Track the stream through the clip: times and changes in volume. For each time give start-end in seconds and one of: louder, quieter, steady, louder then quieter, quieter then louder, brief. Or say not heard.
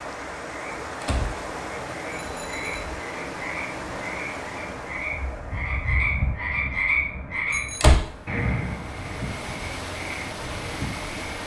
0.0-11.4 quieter then louder.